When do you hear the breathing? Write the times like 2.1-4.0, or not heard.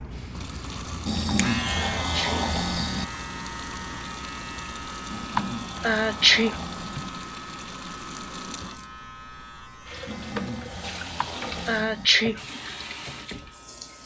1.1-3.0, 5.0-7.1, 10.1-12.1.